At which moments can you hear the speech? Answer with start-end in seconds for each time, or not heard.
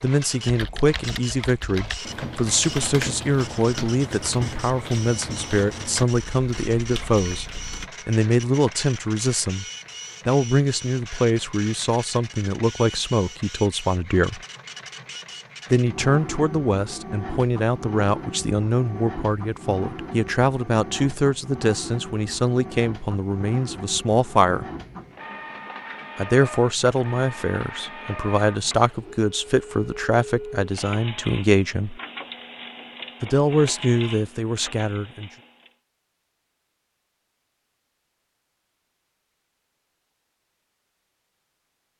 0.0-9.7, 10.2-14.4, 15.7-24.6, 26.1-32.0, 33.2-35.3.